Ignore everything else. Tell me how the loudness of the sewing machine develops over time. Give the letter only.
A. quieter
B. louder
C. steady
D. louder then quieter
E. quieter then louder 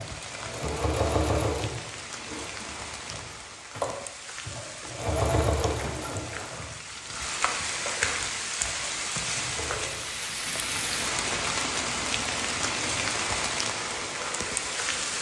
A.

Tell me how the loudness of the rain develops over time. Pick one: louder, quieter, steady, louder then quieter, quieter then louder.
louder.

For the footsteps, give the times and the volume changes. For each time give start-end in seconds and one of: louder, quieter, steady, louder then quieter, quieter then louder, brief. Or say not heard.
not heard.